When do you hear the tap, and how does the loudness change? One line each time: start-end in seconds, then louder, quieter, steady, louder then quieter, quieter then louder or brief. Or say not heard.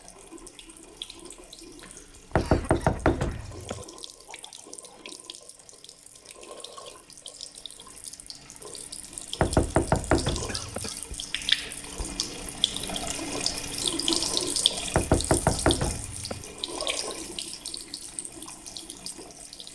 0.0-19.7 louder then quieter.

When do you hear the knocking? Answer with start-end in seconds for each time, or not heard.
2.4-3.9, 9.4-10.9, 14.9-16.4.